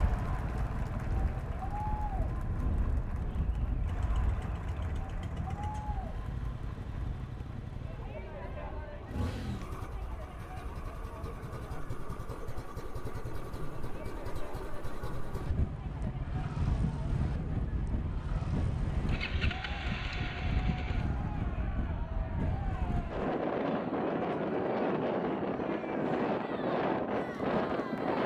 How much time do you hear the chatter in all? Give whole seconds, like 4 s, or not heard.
28 s.